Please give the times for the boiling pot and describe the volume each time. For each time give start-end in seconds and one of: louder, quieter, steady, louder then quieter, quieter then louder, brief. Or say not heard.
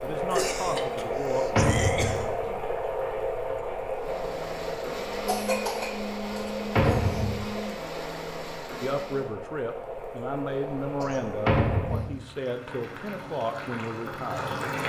0.0-14.8 quieter.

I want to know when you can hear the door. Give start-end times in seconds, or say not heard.
1.6-2.3, 6.8-7.5, 11.4-12.2.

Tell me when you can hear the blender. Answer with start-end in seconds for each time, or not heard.
4.0-9.3.